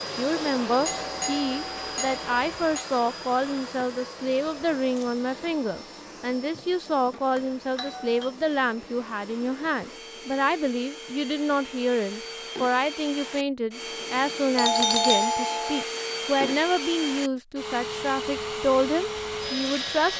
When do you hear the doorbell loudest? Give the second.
15 s.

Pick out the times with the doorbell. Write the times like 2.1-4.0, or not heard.
0.8-2.9, 7.3-8.3, 14.6-15.8.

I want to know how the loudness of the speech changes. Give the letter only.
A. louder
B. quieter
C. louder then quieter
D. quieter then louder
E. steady
E.